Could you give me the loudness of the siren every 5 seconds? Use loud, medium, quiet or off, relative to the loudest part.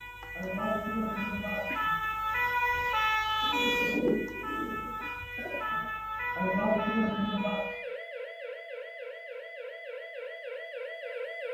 loud, medium, medium.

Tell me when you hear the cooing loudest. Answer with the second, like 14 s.
4 s.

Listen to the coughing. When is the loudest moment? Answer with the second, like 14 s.
7 s.